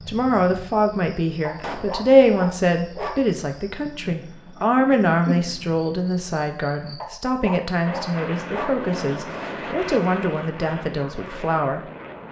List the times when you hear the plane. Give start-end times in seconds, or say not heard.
7.8-12.2.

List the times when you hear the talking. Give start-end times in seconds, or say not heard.
0.1-11.8.